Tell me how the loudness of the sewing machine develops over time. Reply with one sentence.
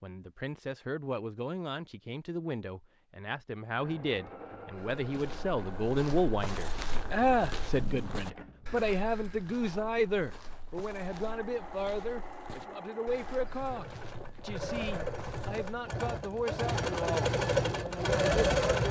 The volume of the sewing machine goes up.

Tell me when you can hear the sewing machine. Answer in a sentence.
The sewing machine can be heard from 3.8 to 18.8 s.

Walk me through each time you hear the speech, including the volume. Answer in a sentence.
You can hear the speech from 0.0 to 18.8 s, getting louder then quieter.